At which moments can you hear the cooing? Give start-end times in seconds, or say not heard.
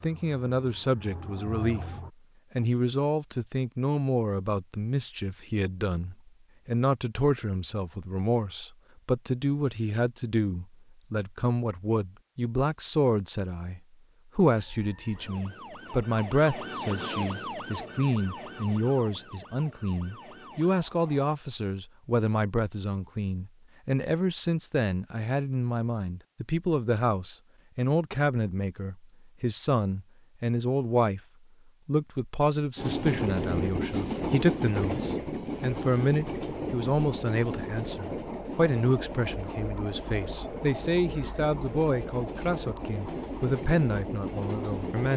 not heard.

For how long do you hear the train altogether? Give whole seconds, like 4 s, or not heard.
12 s.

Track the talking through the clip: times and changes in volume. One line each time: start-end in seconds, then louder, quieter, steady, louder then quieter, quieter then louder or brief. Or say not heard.
0.0-1.9 brief
2.5-31.2 steady
31.9-45.1 steady.